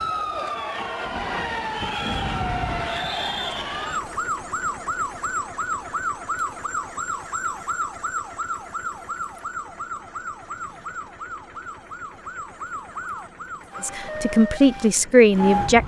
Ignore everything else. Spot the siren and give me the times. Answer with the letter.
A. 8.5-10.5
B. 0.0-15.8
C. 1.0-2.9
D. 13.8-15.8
B.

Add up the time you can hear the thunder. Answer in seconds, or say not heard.
2 s.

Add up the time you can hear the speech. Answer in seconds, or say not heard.
2 s.